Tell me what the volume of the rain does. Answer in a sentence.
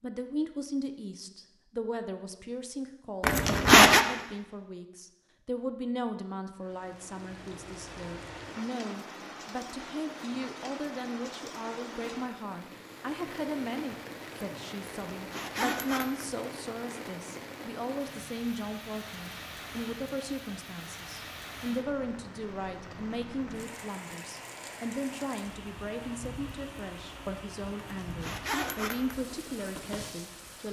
The volume of the rain stays about the same.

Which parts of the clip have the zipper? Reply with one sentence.
The zipper can be heard from 3.2 to 4.0 s, from 15.1 to 16.2 s and from 28.0 to 29.1 s.